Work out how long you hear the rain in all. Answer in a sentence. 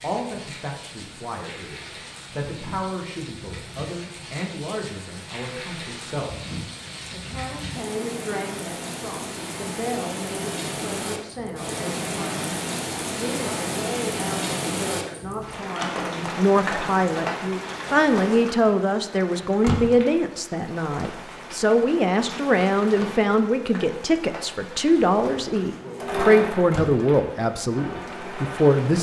You can hear the rain for 29 seconds altogether.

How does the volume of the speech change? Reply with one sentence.
The volume of the speech goes up.